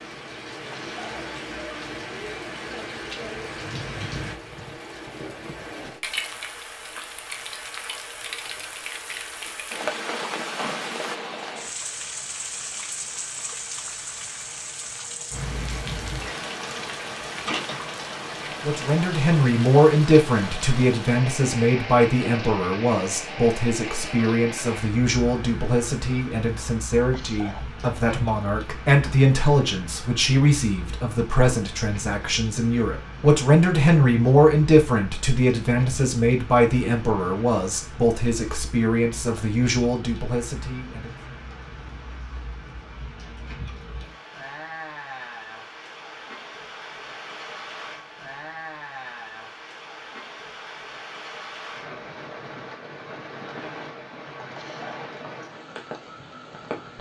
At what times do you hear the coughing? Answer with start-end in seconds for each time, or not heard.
0.7-1.2, 27.1-27.7, 54.5-55.1.